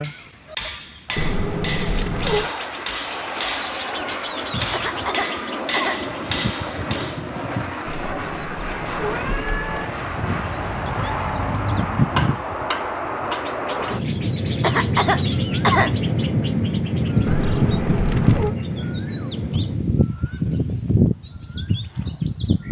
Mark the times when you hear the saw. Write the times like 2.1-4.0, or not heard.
not heard.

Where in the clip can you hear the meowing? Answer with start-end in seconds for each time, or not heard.
1.1-2.5, 7.8-9.8, 17.2-18.6.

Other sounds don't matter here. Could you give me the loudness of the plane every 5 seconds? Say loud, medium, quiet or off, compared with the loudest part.
medium, medium, loud, loud, off.